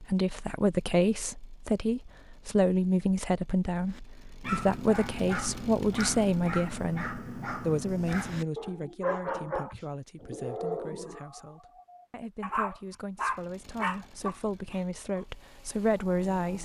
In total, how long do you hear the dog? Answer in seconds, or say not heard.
11 s.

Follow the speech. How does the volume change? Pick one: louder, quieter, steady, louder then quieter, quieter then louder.
quieter then louder.